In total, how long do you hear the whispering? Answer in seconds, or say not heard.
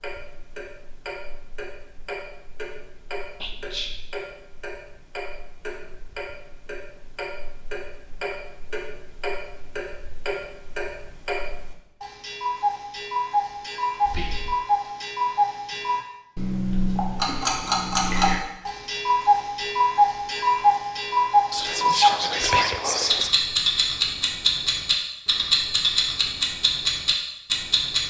3 s.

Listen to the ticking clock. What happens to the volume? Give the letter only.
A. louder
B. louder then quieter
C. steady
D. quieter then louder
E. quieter
A.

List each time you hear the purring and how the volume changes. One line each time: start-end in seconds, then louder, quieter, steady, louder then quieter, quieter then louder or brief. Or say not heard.
not heard.